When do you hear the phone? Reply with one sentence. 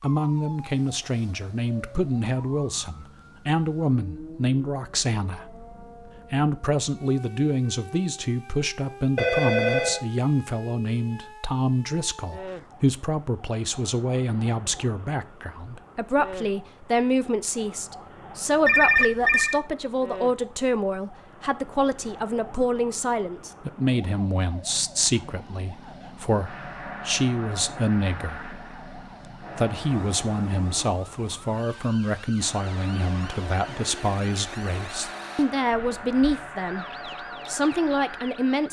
The phone can be heard from 9.2 to 10.0 s, from 18.6 to 19.6 s and from 35.7 to 36.5 s.